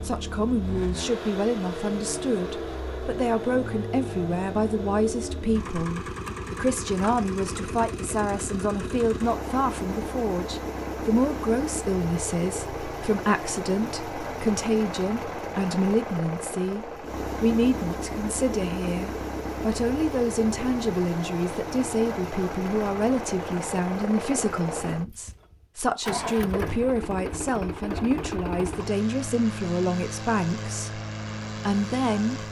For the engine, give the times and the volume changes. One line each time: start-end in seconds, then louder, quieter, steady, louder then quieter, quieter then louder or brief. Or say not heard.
0.0-32.4 steady.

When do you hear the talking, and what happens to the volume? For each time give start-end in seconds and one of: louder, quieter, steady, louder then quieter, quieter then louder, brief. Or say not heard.
0.0-31.0 steady
31.6-32.4 brief.